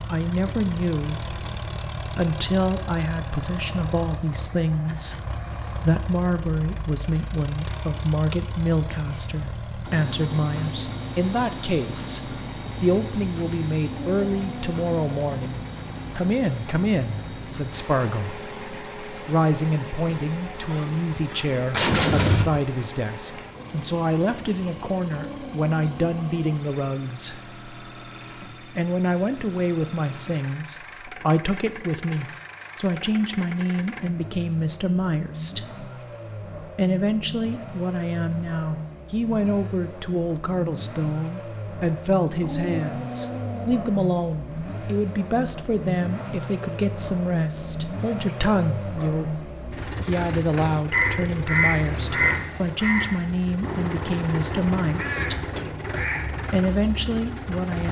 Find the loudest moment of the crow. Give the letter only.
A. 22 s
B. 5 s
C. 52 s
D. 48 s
C.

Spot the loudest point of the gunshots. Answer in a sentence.
The loudest moment of the gunshots is at 22 seconds.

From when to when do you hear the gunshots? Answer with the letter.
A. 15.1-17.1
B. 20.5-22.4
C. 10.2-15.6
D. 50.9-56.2
B.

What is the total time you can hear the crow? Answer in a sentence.
You can hear the crow for 5 seconds altogether.